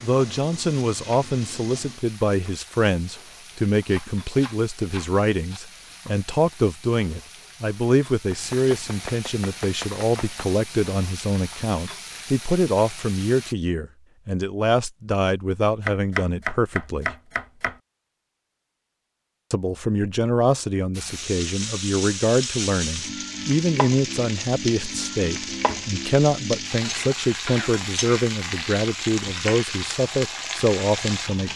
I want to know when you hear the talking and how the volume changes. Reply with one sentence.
The talking can be heard from 0.0 to 17.1 s, at a steady volume; and from 19.5 to 31.5 s, at a steady volume.